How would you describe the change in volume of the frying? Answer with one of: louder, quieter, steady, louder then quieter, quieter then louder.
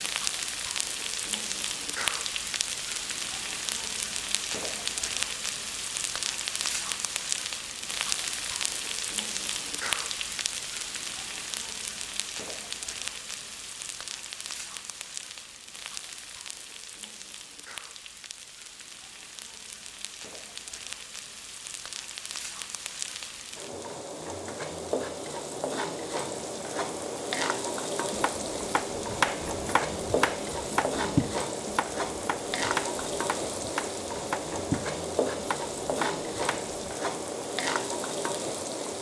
quieter then louder.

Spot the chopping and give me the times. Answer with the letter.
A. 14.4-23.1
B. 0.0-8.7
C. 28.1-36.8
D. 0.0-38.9
C.